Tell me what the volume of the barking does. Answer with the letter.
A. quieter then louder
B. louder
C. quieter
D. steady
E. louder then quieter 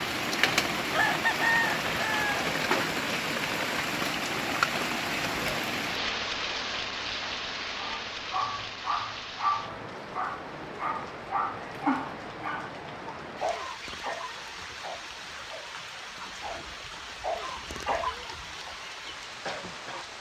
A.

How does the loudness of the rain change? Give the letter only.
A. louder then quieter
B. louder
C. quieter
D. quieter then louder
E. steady
C.